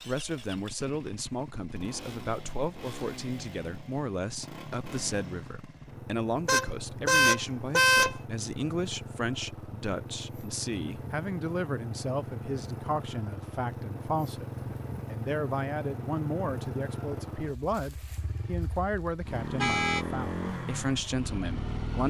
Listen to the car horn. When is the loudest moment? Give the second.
8 s.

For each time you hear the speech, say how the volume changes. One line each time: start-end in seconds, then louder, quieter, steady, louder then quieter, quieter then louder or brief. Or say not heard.
0.1-22.0 steady.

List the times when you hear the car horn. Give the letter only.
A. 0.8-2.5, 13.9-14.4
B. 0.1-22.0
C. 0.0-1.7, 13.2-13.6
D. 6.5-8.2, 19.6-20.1
D.